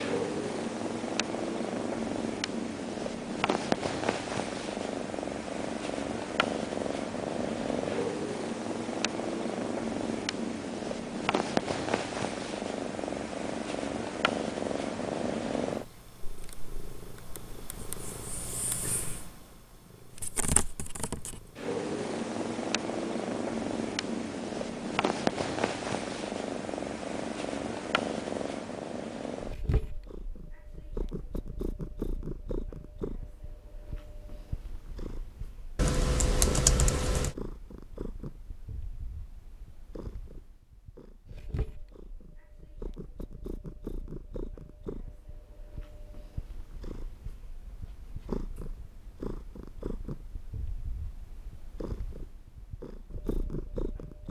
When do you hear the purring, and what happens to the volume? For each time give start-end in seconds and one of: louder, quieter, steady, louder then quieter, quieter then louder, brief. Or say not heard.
0.0-54.2 quieter.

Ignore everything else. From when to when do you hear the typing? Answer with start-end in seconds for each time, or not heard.
35.8-37.4.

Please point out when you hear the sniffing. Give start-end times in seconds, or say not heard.
not heard.